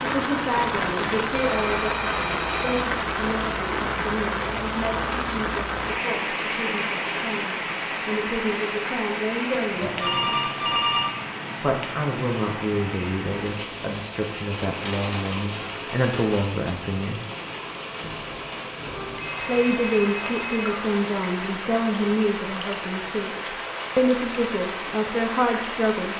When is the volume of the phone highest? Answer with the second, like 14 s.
11 s.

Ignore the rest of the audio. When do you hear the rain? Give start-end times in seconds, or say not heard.
0.0-26.1.